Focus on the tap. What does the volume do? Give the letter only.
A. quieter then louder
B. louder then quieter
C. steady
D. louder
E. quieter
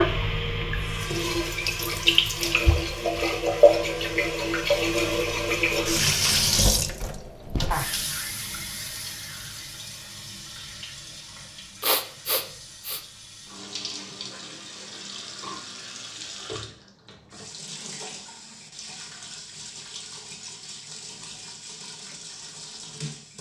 E.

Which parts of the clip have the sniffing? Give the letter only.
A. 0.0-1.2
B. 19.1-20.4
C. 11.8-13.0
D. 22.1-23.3
C.